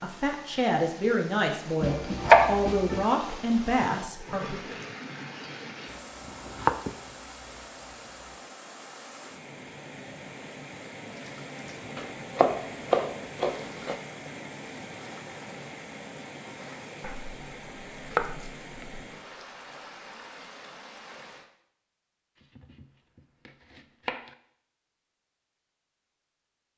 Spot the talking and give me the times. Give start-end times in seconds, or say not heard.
0.0-4.8.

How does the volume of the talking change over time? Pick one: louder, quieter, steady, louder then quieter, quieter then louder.
steady.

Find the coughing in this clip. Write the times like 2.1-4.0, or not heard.
not heard.